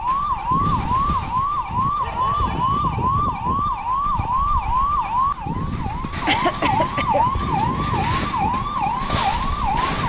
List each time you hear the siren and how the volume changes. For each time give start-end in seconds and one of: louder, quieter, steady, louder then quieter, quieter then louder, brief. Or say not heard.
0.0-10.0 steady.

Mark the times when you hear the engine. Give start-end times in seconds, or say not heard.
0.0-10.0.